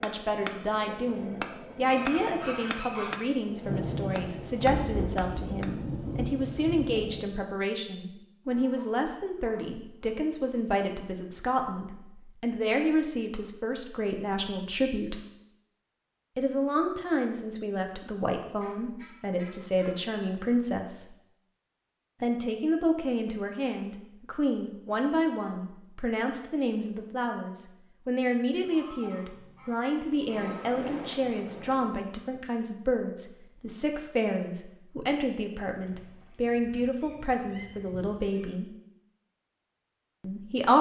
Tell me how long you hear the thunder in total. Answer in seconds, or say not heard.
6 s.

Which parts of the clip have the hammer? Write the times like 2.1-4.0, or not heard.
0.0-5.7.